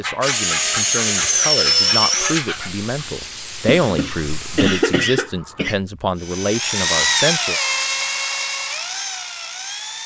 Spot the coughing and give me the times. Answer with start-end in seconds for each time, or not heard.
3.6-5.8.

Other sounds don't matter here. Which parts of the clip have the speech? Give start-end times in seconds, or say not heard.
0.0-7.6.